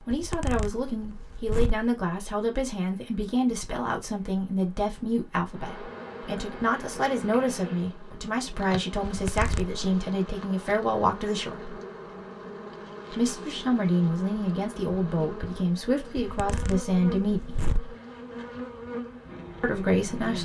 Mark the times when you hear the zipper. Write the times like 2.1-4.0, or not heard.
0.1-1.9, 9.1-9.8, 16.1-17.9.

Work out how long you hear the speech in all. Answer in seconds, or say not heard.
17 s.